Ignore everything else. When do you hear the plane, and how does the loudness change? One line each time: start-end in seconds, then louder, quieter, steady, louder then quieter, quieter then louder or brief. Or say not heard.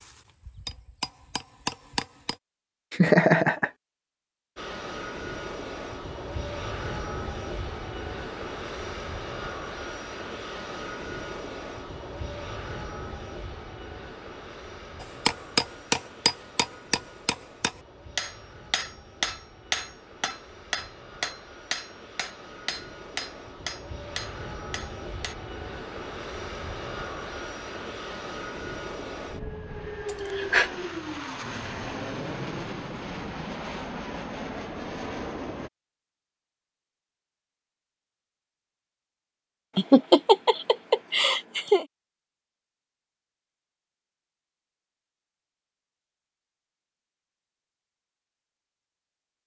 4.5-35.7 quieter then louder.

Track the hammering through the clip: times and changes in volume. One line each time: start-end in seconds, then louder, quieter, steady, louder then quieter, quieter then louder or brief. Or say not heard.
0.0-2.4 brief
15.0-25.4 quieter.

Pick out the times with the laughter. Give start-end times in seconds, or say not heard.
2.9-3.7, 30.1-30.7, 39.8-41.9.